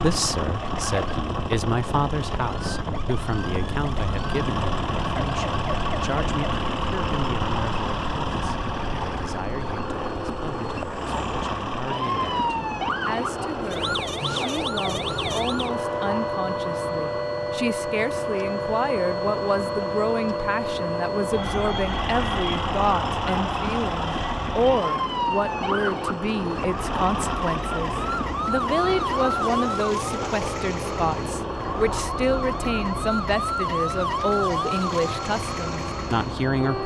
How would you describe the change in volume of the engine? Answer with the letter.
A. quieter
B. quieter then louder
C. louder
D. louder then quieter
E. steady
E.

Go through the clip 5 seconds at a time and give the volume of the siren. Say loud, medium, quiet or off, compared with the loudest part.
medium, medium, loud, loud, loud, loud, loud, medium.